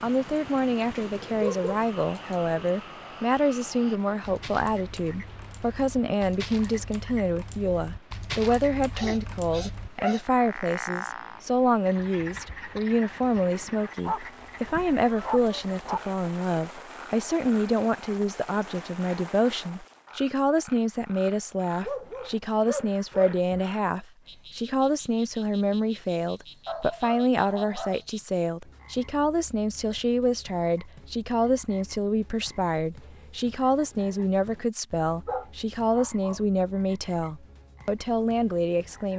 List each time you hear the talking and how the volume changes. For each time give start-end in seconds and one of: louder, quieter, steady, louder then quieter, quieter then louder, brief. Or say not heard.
0.0-39.1 steady.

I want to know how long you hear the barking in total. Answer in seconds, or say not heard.
9 s.